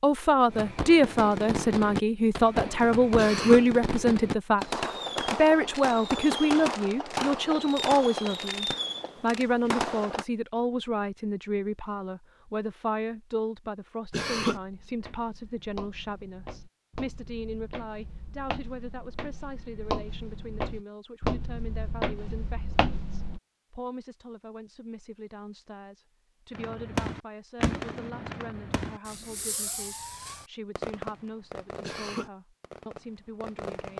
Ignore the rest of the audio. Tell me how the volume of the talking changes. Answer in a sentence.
The volume of the talking goes down.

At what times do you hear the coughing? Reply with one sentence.
You can hear the coughing from 3.1 to 3.6 s, from 14.1 to 14.6 s and from 31.8 to 32.3 s.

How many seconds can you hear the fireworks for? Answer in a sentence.
You can hear the fireworks for 17 seconds altogether.